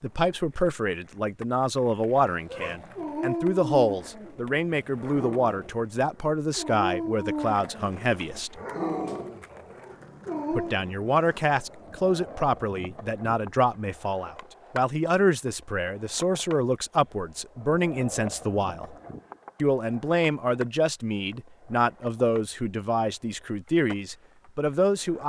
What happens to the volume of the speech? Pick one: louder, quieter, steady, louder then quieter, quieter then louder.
steady.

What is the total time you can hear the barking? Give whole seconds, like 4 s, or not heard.
8 s.